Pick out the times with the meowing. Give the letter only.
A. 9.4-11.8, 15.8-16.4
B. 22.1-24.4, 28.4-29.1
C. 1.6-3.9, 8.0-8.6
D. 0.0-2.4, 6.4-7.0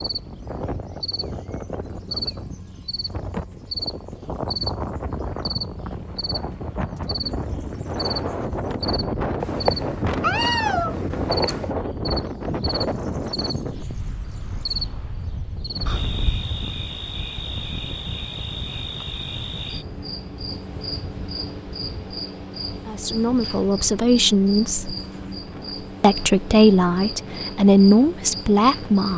A.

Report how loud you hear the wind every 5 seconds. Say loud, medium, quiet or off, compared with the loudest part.
medium, loud, loud, medium, quiet, quiet.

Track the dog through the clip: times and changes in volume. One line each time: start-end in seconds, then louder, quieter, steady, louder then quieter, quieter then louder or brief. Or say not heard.
not heard.